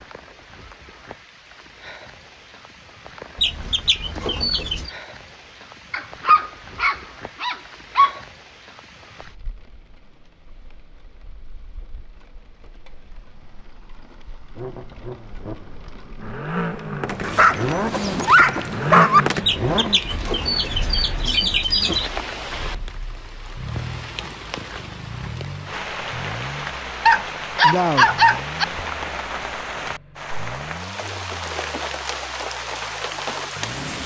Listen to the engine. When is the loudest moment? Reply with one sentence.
The loudest moment of the engine is at 19 seconds.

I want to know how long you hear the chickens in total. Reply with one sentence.
You can hear the chickens for 4 seconds altogether.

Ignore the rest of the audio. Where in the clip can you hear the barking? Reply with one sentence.
You can hear the barking from 5.9 to 8.2 s, from 17.2 to 19.2 s and from 27.1 to 28.6 s.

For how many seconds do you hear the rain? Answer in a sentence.
The rain can be heard for 34 seconds in total.